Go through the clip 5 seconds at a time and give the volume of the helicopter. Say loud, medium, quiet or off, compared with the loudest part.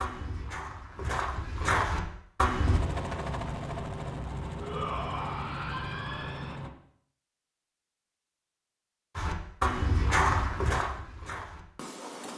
loud, loud, off.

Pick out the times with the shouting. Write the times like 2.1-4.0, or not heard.
4.5-6.6.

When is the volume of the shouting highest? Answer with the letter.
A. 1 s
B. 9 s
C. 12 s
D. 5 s
D.